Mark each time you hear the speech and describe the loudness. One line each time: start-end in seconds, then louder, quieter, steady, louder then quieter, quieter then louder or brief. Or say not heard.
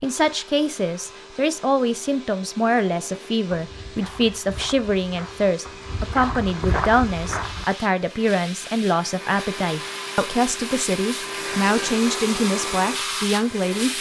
0.0-13.9 steady.